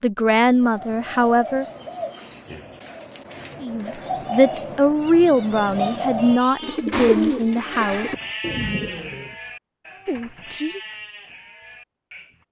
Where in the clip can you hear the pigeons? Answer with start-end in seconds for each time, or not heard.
0.5-9.3.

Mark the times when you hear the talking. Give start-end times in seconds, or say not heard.
0.0-1.6, 3.6-8.2, 10.1-10.8.